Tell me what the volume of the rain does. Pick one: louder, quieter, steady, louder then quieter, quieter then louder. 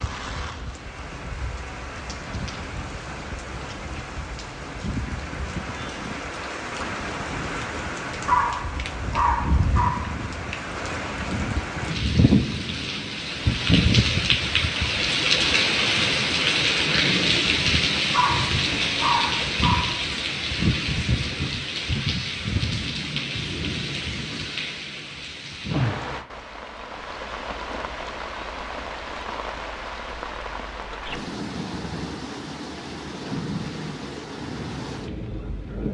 louder then quieter.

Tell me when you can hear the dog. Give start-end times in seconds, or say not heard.
8.2-9.9, 18.1-19.8.